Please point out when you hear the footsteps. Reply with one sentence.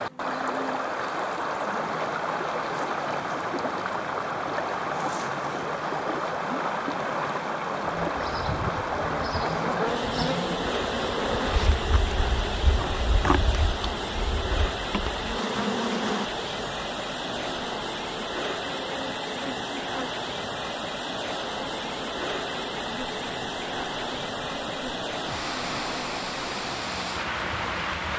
You can't hear the footsteps here.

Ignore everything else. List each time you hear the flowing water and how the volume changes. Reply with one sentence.
The flowing water can be heard from 0.0 to 28.1 s, at a steady volume.